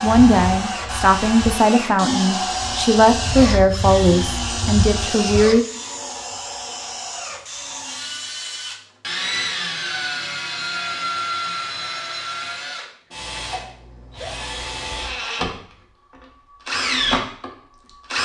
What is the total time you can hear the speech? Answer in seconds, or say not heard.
6 s.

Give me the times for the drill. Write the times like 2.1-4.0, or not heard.
0.0-18.1.